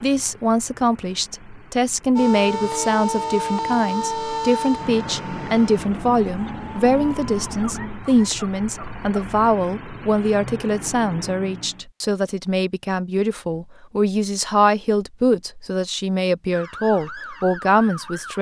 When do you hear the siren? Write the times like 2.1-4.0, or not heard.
2.1-9.2, 16.5-18.3.